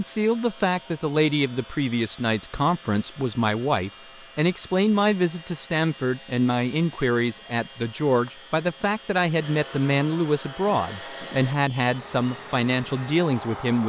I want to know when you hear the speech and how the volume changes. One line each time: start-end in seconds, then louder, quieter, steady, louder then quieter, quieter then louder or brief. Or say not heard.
0.0-13.8 steady.